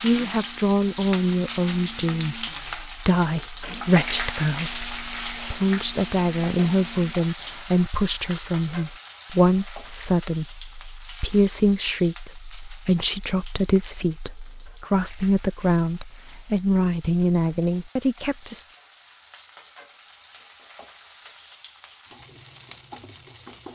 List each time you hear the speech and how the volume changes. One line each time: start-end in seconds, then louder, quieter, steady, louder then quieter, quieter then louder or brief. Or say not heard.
0.0-18.6 steady.